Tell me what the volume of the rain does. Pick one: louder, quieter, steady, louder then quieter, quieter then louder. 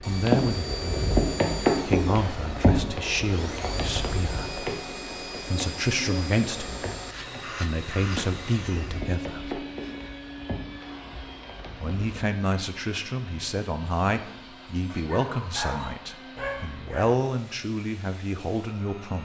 quieter.